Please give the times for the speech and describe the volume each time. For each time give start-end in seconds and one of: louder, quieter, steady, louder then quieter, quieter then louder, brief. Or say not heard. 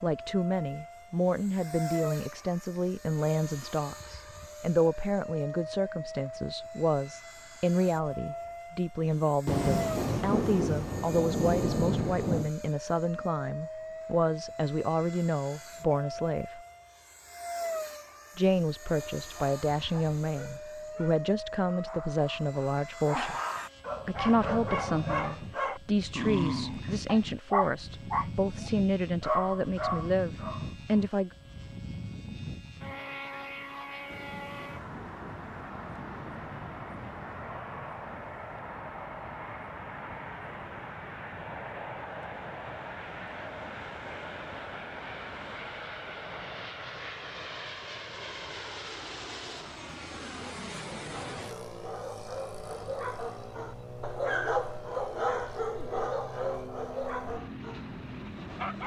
0.0-16.6 steady
18.4-23.4 steady
24.1-31.3 steady.